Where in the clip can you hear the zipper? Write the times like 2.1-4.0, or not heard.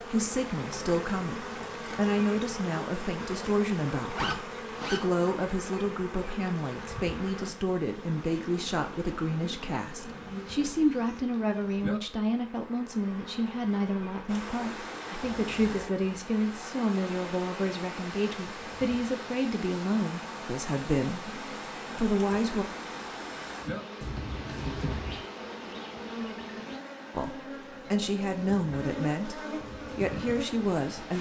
4.1-5.0, 15.2-15.9, 24.0-25.2.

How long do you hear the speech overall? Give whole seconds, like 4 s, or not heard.
27 s.